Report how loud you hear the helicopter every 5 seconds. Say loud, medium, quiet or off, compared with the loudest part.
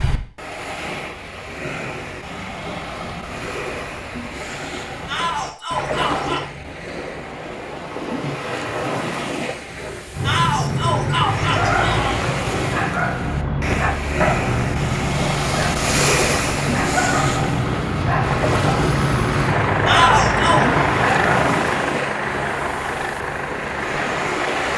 off, off, medium, loud, loud.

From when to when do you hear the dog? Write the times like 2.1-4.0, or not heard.
10.1-21.6.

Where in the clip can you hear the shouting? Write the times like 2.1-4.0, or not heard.
5.0-6.4, 10.2-12.2, 19.9-20.6.